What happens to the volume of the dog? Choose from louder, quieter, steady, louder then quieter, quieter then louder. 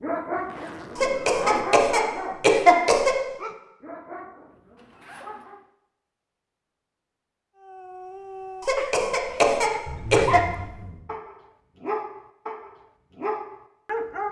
quieter then louder.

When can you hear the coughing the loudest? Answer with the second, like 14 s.
3 s.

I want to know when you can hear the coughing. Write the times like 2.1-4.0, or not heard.
0.9-3.1, 8.6-10.4.